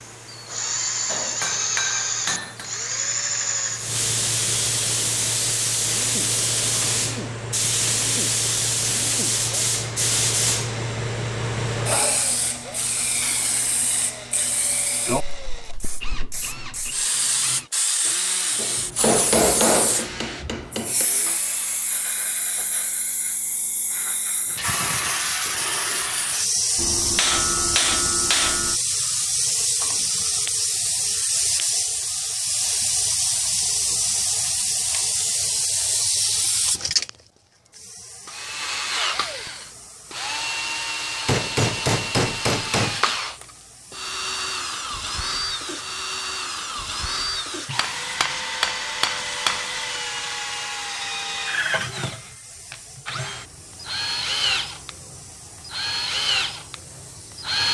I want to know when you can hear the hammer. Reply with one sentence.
You can hear the hammer from 1.1 to 2.6 s, from 18.6 to 21.1 s, from 26.8 to 28.8 s, from 41.2 to 43.1 s and from 47.8 to 49.7 s.